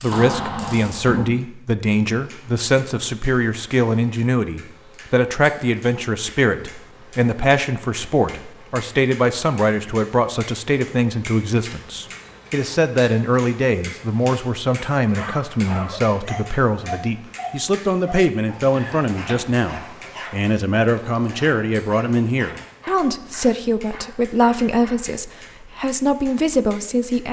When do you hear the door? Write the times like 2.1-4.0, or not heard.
0.1-1.4, 18.8-19.6.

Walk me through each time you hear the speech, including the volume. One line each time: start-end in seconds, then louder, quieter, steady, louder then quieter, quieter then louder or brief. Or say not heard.
0.0-27.2 steady.